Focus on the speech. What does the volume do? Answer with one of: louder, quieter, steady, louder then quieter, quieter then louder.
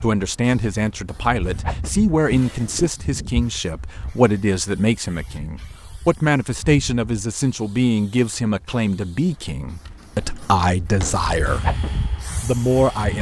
steady.